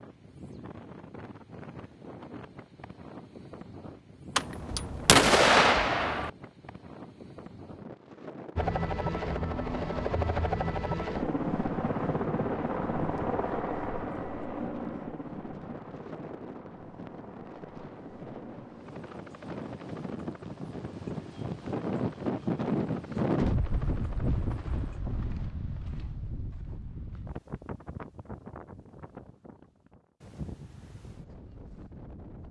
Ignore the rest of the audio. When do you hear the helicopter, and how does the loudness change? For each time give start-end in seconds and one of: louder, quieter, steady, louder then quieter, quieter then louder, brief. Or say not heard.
8.6-25.0 quieter.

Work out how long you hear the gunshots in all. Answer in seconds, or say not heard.
2 s.